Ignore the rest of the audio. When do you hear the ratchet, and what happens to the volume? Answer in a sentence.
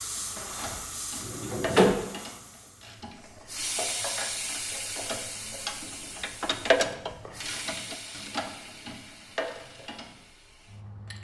The ratchet can be heard from 0.1 to 10.2 s, getting louder then quieter.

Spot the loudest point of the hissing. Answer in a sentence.
The loudest moment of the hissing is at 4 seconds.